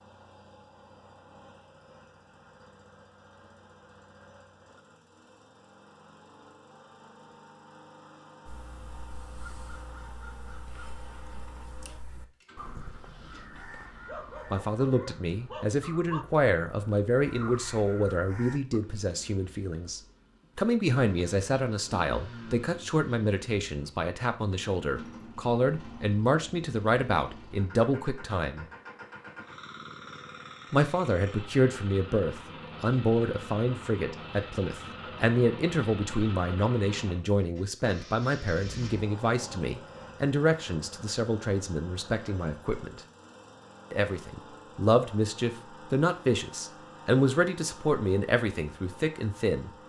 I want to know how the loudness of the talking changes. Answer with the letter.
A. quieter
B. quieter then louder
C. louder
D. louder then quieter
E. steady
E.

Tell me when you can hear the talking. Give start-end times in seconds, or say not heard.
14.5-28.6, 30.7-43.0, 43.9-49.7.